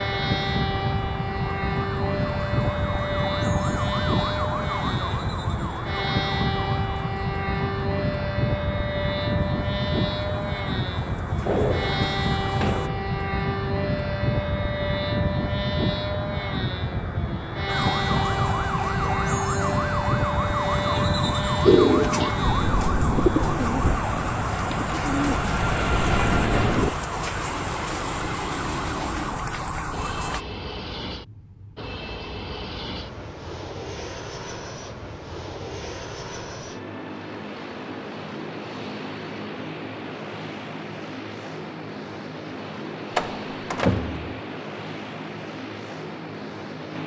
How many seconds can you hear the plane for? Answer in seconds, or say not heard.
47 s.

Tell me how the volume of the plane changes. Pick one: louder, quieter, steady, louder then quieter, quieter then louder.
quieter.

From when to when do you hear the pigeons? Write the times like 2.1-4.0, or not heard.
21.6-26.9.